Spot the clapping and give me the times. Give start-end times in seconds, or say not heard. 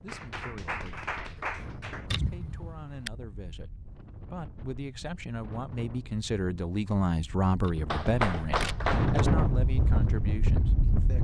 0.1-2.0, 7.9-9.2.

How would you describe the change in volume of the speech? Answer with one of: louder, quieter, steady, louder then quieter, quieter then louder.
louder then quieter.